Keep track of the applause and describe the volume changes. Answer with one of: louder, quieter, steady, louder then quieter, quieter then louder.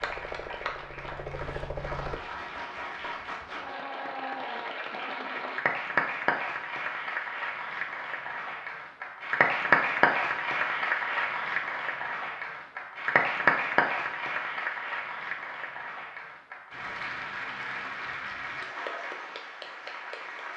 louder then quieter.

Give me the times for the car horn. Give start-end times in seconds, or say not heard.
not heard.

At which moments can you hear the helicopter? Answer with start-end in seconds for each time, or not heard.
0.0-2.2.